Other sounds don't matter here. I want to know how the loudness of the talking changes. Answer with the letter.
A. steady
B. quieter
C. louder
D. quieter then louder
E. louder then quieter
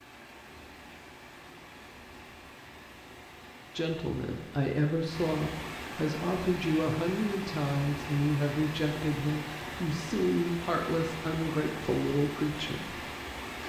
A.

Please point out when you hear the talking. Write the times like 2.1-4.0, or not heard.
3.8-12.9.